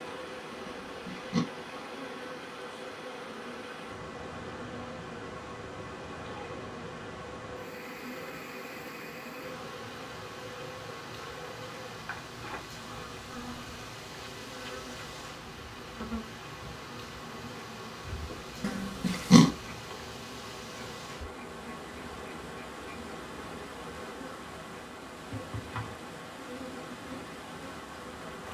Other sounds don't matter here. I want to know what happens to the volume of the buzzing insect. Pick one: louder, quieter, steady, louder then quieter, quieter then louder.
steady.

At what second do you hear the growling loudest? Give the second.
19 s.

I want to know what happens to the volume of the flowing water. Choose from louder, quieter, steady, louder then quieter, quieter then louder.
steady.